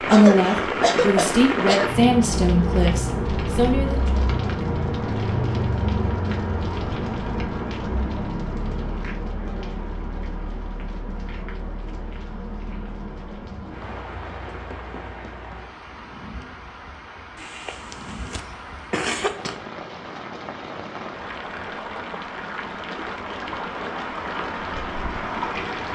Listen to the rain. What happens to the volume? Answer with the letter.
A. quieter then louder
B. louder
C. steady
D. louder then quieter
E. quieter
A.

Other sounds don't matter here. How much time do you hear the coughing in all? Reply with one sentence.
The coughing can be heard for 4 seconds in total.